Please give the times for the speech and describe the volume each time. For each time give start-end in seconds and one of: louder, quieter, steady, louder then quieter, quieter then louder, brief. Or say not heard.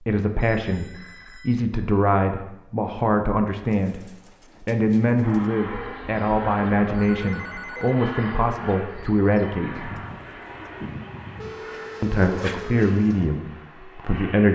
0.0-9.9 steady
12.0-14.4 brief.